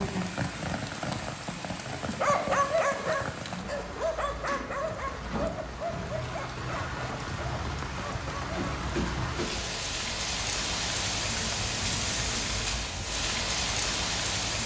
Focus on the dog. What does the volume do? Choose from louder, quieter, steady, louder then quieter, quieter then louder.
quieter.